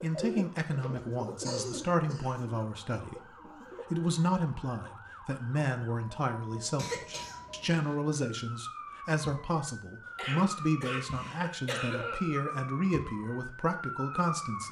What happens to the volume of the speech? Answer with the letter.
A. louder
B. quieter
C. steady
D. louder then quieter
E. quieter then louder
C.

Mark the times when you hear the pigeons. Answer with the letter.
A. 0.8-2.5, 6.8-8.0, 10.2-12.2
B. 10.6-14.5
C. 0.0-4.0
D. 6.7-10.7
C.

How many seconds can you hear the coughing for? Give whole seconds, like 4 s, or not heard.
5 s.